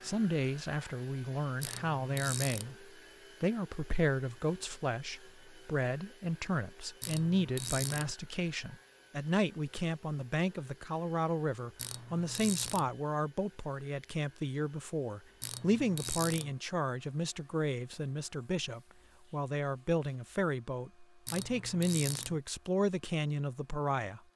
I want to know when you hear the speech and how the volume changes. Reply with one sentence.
You can hear the speech from 0.0 to 24.2 s, at a steady volume.